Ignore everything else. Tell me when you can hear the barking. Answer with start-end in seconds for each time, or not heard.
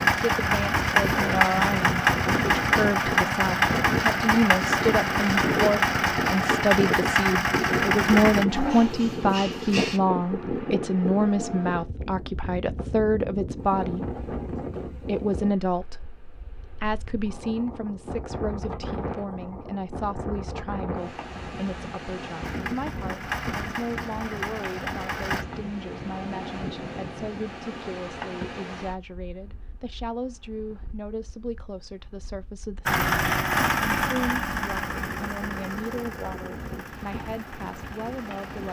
8.4-10.0.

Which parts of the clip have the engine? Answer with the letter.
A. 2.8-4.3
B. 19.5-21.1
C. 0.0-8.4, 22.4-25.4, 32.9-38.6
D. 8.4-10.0
C.